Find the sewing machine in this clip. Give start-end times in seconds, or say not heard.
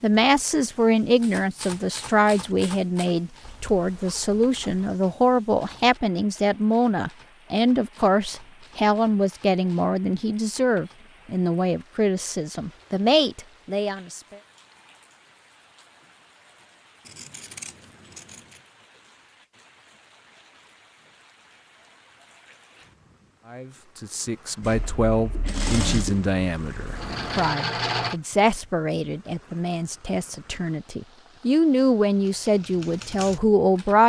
24.6-28.1.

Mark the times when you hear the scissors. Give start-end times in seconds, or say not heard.
17.0-18.6.